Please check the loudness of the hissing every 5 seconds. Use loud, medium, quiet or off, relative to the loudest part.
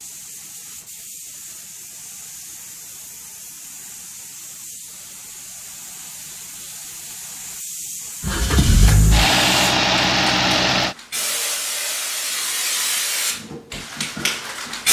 quiet, medium, loud.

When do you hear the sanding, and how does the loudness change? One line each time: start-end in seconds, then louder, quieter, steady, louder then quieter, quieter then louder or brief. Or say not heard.
not heard.